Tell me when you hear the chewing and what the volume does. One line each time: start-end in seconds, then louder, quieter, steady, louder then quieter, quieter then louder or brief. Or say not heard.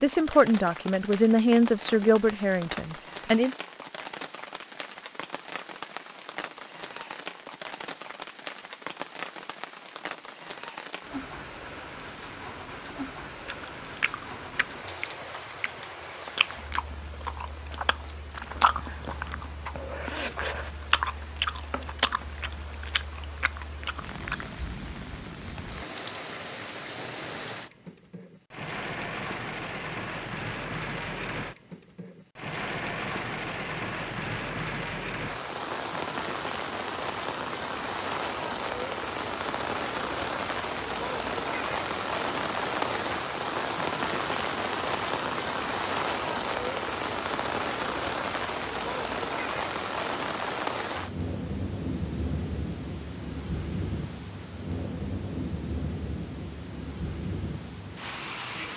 13.4-24.5 louder then quieter.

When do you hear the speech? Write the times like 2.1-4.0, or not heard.
0.0-3.5.